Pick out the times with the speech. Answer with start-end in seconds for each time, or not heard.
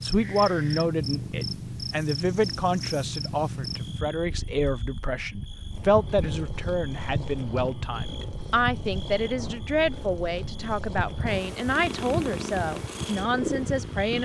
0.0-14.2.